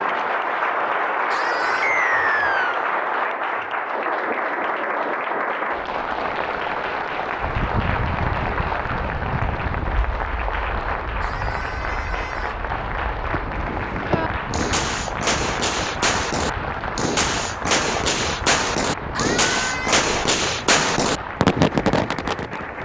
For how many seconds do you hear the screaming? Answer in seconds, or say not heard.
3 s.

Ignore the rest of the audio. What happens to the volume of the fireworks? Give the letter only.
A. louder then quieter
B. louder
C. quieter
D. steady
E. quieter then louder
B.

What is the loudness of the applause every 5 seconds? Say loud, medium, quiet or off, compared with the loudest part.
loud, loud, medium, medium, medium.